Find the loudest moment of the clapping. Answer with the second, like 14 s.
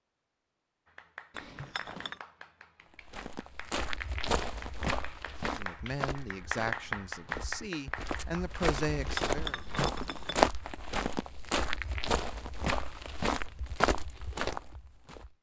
7 s.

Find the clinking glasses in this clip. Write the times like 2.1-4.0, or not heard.
1.3-2.2, 8.8-10.4.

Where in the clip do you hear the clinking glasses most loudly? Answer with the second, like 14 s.
9 s.